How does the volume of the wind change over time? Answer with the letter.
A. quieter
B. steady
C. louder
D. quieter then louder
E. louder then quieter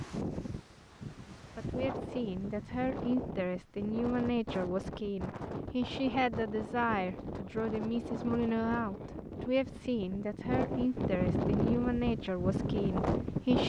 C.